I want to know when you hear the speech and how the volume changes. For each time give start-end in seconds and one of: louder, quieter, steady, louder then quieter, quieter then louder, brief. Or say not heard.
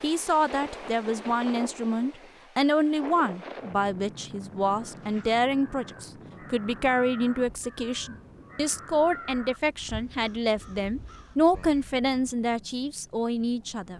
0.0-13.9 steady.